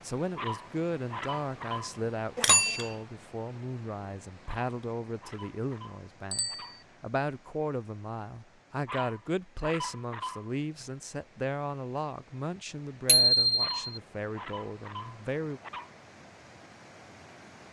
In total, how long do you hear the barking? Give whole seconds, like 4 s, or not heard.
9 s.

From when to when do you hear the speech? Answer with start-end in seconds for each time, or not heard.
0.0-15.6.